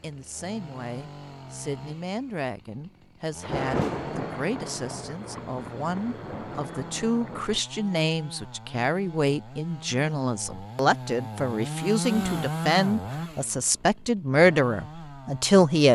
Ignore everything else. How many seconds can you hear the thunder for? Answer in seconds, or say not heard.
4 s.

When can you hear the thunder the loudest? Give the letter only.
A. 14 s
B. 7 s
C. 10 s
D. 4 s
D.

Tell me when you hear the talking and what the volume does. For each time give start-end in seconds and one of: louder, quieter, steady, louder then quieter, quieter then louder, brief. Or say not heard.
0.0-15.8 louder.